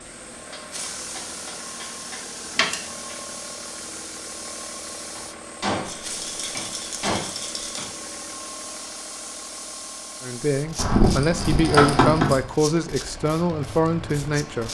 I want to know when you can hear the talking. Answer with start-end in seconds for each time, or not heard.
10.2-14.6.